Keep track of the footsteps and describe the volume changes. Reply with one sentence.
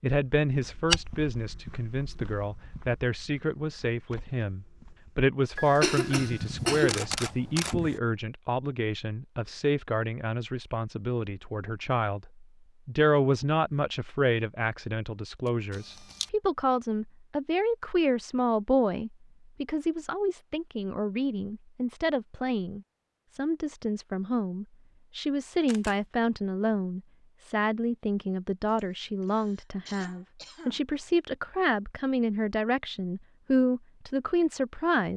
The loudness of the footsteps goes down, then up.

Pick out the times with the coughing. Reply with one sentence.
You can hear the coughing from 5.5 to 7.0 s and from 28.6 to 30.9 s.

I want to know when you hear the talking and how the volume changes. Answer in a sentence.
You can hear the talking from 0.0 to 35.1 s, at a steady volume.